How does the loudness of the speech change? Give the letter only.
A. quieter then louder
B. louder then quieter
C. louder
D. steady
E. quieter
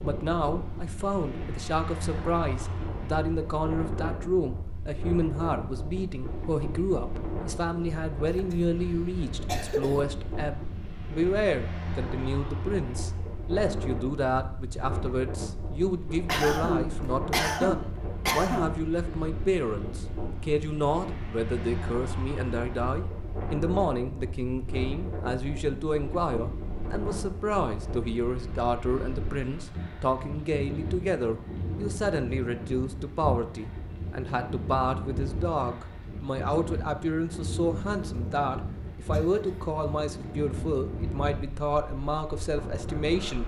D.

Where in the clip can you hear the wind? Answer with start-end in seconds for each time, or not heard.
0.0-43.4.